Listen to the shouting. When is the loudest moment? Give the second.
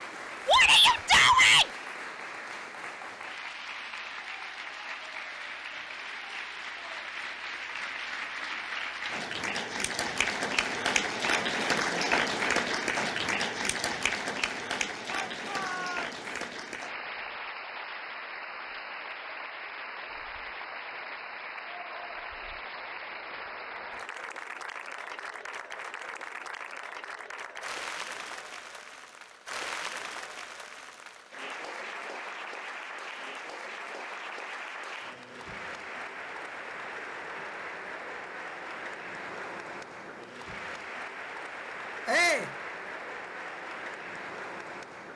1 s.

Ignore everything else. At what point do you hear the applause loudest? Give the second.
12 s.